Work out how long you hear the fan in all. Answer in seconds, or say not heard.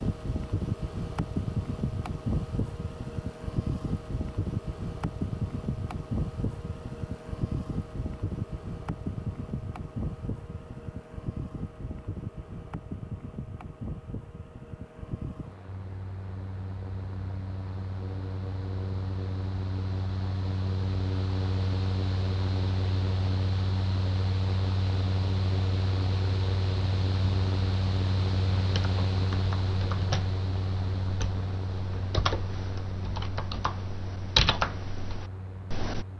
36 s.